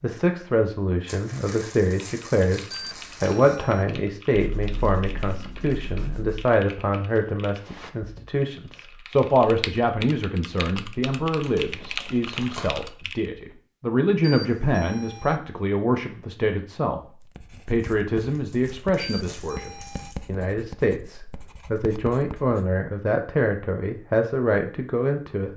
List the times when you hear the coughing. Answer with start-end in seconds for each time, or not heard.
not heard.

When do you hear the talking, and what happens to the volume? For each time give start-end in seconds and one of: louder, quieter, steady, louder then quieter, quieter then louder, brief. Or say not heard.
0.0-25.5 steady.